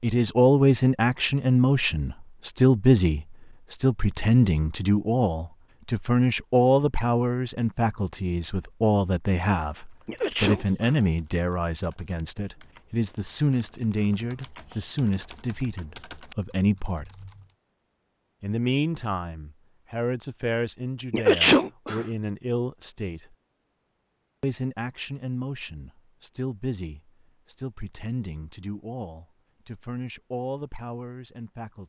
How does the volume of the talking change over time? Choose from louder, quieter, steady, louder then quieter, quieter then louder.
quieter.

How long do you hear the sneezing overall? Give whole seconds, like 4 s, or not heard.
2 s.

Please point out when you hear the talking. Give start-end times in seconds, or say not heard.
0.0-17.1, 18.4-23.4, 24.4-31.8.